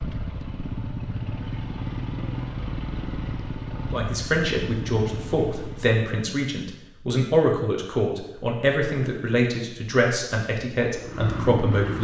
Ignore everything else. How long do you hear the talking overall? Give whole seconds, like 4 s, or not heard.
8 s.